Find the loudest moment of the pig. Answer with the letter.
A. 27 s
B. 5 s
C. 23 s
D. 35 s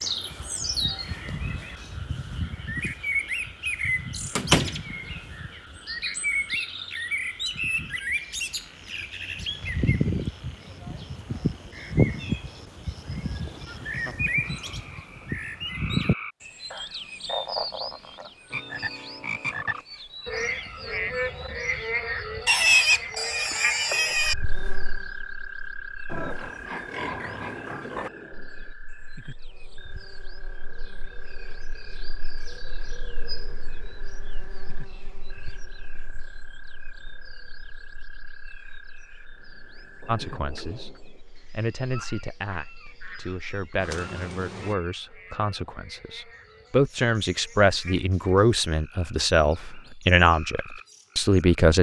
C.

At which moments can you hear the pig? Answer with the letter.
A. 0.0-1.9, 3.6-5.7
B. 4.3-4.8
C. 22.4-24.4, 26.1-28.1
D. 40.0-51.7
C.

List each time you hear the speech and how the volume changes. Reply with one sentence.
The speech can be heard from 40.0 to 51.7 s, getting louder.